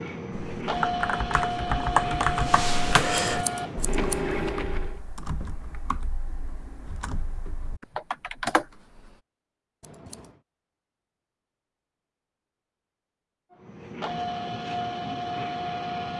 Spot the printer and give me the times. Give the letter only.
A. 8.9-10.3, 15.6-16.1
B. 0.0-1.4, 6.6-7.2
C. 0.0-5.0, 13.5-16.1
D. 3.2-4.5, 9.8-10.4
C.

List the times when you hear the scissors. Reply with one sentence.
You can hear the scissors from 3.2 to 4.5 s and from 9.8 to 10.4 s.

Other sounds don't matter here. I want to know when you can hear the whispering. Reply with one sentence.
You can't hear the whispering here.